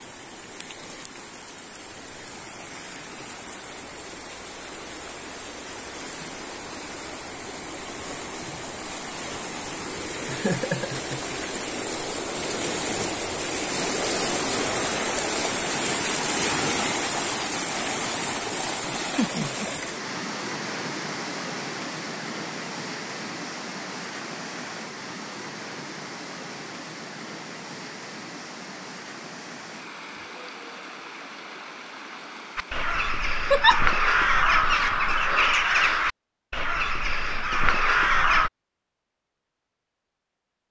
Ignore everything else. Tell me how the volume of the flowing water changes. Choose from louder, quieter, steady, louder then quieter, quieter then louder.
louder then quieter.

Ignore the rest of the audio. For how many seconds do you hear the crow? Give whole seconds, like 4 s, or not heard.
6 s.